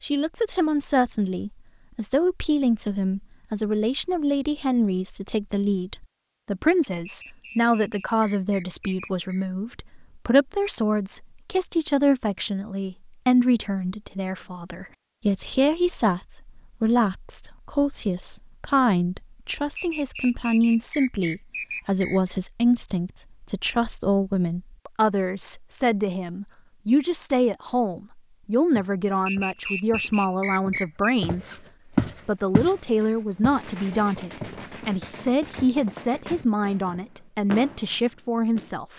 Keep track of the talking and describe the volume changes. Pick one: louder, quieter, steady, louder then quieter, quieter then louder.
steady.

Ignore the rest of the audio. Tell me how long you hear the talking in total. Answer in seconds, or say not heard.
39 s.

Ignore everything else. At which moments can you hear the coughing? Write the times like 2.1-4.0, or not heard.
not heard.